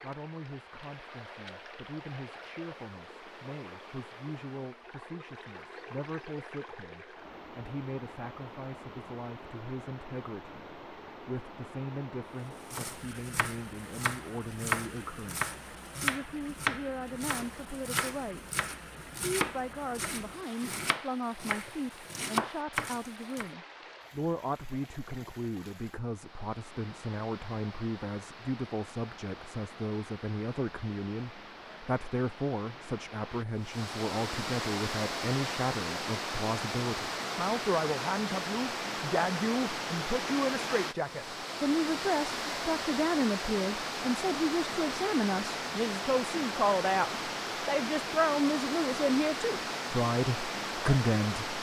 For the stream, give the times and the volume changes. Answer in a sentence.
The stream can be heard from 0.0 to 51.5 s, getting louder.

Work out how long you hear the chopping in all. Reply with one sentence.
You can hear the chopping for 11 seconds altogether.